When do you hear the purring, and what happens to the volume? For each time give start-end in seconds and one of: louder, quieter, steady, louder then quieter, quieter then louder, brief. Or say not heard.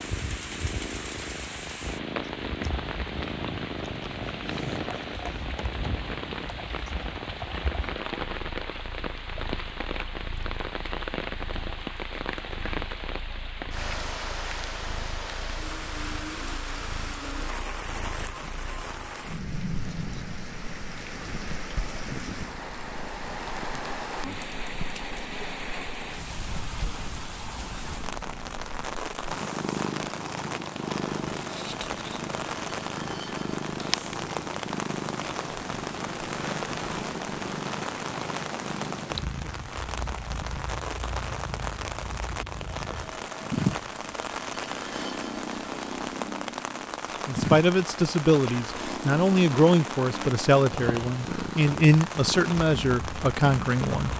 0.0-54.1 quieter then louder.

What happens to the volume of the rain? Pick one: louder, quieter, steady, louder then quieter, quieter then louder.
steady.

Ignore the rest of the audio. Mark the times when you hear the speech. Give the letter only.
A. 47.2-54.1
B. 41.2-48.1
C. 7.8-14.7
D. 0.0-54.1
A.